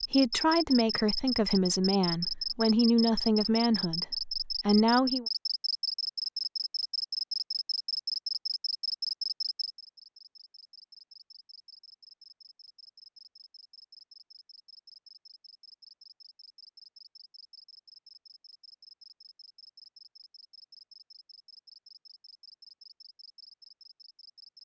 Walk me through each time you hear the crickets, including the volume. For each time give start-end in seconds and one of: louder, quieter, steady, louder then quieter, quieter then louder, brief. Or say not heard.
0.0-24.5 quieter.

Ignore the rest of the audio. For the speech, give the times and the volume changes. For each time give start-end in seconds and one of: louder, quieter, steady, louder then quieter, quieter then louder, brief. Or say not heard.
0.0-5.2 steady.